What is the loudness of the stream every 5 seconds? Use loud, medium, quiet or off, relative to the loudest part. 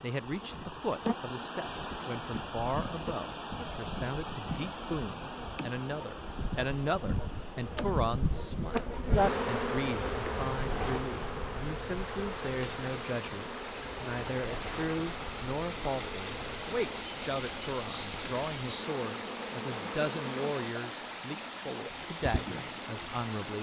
loud, medium, loud, loud, loud.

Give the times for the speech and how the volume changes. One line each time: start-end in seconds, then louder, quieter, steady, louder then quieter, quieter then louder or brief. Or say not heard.
0.0-23.5 steady.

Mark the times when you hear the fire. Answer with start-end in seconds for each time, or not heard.
not heard.